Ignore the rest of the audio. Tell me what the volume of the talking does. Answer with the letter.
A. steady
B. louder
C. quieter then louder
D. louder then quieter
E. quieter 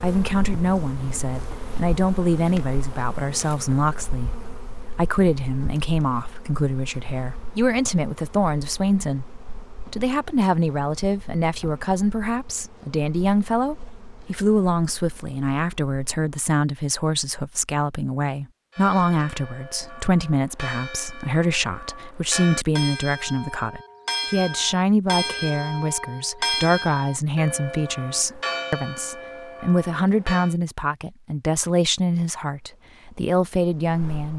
A.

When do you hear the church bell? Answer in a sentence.
You can hear the church bell from 18.7 to 30.6 s.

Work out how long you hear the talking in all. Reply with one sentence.
You can hear the talking for 34 seconds altogether.